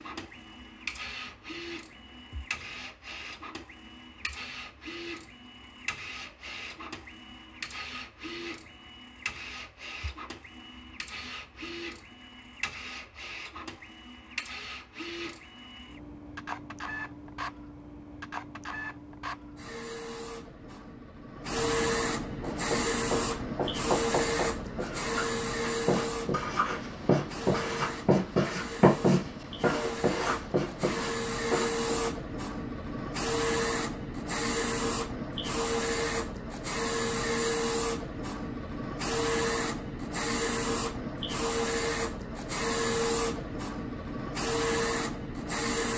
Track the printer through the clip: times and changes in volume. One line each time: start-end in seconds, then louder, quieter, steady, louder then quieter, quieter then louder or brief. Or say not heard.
0.0-45.9 louder.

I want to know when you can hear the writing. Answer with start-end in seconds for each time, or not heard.
22.4-32.1.